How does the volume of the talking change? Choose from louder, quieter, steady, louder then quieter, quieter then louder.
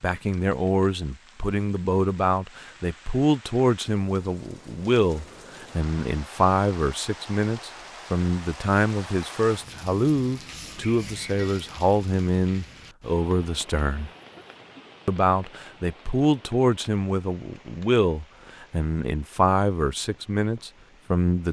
steady.